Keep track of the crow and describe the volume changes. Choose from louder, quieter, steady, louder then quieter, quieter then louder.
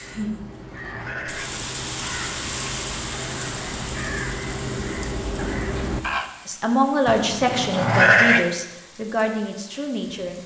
louder.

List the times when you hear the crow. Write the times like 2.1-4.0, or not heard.
0.0-6.3.